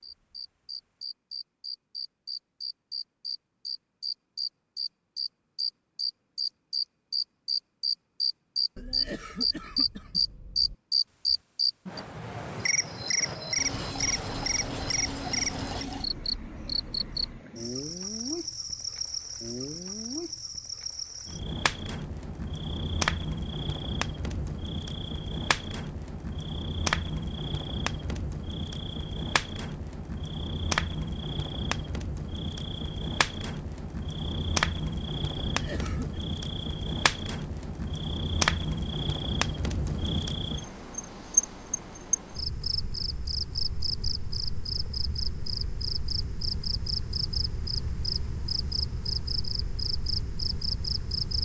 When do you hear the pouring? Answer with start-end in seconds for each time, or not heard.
13.6-16.1.